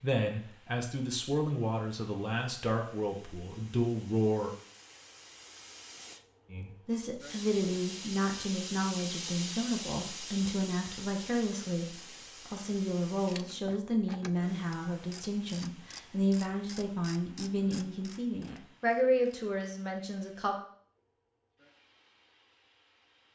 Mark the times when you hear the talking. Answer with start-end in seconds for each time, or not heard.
0.0-4.5, 6.5-20.6.